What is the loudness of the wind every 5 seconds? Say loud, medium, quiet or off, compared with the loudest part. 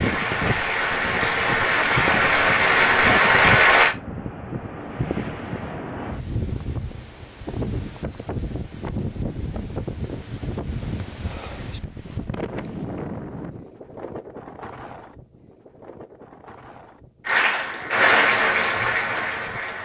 loud, loud, loud, quiet.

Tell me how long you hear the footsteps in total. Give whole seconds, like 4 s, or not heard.
not heard.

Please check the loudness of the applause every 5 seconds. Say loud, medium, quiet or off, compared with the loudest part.
loud, off, off, loud.